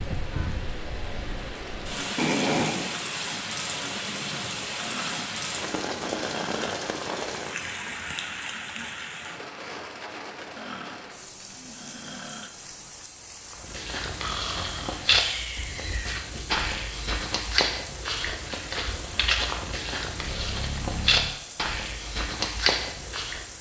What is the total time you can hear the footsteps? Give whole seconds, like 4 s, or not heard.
10 s.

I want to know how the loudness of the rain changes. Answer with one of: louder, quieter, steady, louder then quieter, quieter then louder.
quieter.